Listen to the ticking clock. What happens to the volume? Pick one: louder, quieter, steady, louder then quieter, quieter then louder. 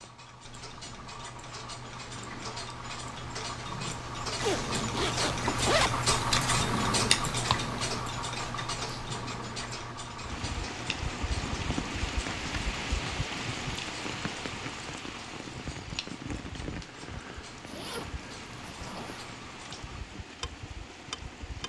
louder then quieter.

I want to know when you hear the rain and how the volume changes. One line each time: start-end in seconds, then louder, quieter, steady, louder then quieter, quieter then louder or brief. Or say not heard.
10.2-21.6 quieter.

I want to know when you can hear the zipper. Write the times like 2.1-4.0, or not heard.
4.4-6.0, 17.6-19.3.